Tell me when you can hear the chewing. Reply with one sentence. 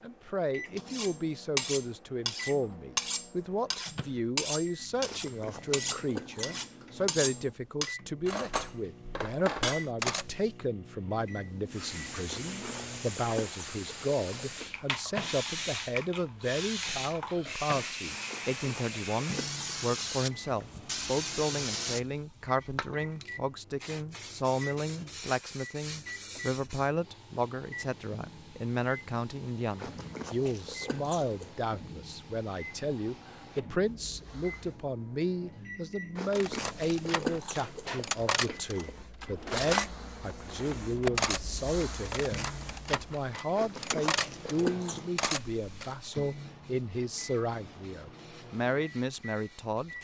The chewing can be heard from 5.0 to 6.5 s, from 12.2 to 14.8 s, from 18.2 to 20.1 s, from 29.8 to 31.6 s, from 36.1 to 39.0 s and from 43.5 to 45.2 s.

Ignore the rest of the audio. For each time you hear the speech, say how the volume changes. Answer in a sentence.
You can hear the speech from 0.0 to 49.9 s, at a steady volume.